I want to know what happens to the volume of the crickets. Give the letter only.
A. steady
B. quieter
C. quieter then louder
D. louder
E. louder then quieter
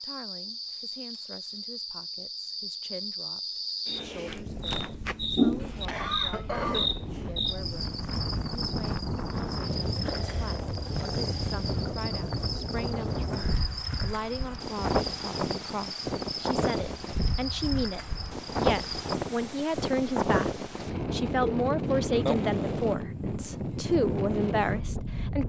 E.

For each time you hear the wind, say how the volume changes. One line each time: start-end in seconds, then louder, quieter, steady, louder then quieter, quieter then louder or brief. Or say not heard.
4.2-25.4 louder.